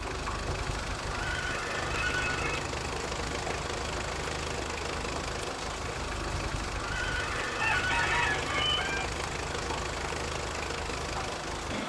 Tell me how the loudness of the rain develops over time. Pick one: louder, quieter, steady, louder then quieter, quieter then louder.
steady.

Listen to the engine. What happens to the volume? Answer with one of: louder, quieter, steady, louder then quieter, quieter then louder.
steady.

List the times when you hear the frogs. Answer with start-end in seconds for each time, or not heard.
not heard.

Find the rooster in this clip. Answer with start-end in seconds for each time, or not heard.
7.4-9.1.